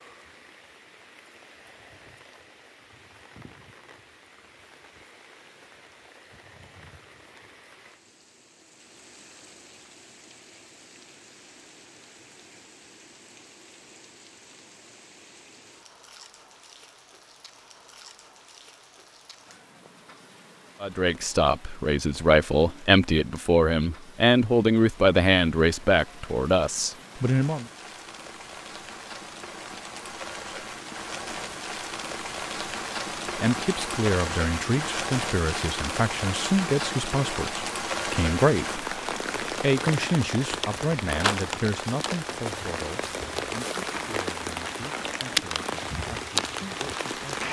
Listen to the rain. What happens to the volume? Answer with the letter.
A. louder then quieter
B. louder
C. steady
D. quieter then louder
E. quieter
B.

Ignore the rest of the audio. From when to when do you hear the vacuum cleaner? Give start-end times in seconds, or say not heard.
not heard.